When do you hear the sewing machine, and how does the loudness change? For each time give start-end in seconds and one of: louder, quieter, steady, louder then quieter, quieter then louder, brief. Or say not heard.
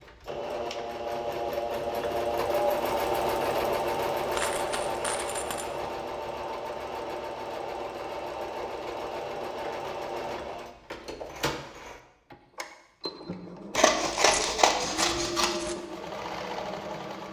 0.0-17.2 quieter.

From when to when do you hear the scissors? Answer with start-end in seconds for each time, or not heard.
13.8-15.6.